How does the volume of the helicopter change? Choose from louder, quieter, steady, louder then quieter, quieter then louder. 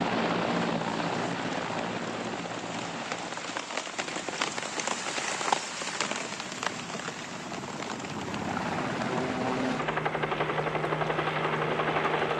quieter then louder.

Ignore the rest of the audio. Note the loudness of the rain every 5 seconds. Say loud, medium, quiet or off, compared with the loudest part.
loud, loud, quiet.